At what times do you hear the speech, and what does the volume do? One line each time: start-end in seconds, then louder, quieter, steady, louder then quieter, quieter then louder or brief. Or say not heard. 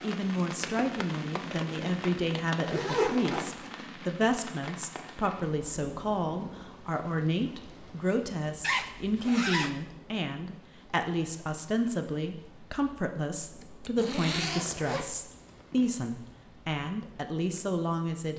0.0-18.3 steady.